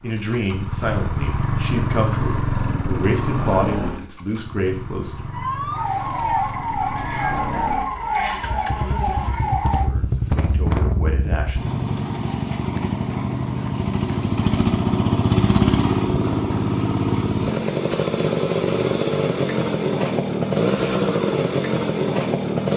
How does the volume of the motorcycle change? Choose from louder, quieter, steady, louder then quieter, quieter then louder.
quieter then louder.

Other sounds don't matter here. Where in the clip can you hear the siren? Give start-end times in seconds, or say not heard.
5.3-9.9.